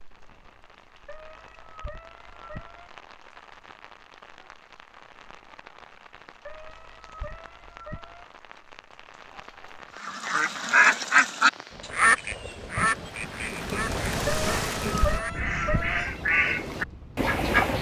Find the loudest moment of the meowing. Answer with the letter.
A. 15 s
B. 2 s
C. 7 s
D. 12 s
A.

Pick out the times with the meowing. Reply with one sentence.
You can hear the meowing from 1.1 to 2.9 s, from 6.5 to 8.2 s and from 14.2 to 16.1 s.